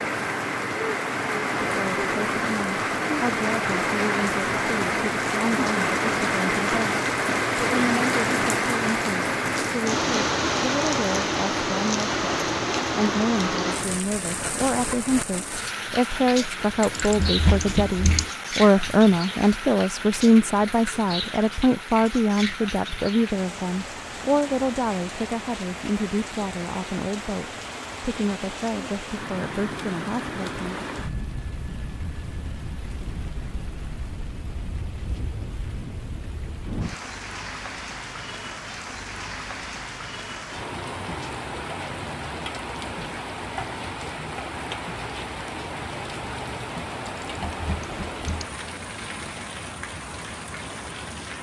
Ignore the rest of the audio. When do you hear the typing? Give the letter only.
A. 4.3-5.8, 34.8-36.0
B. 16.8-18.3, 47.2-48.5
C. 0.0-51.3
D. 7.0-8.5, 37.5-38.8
B.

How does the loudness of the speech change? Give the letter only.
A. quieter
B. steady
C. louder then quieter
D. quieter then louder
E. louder
C.